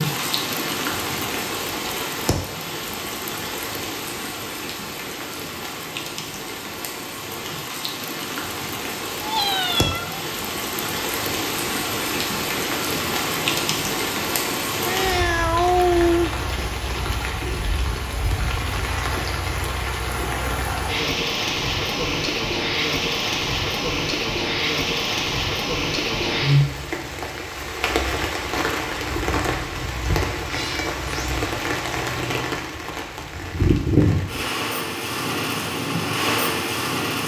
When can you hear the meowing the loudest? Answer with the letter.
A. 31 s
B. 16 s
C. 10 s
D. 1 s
B.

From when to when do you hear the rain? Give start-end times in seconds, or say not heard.
0.0-37.2.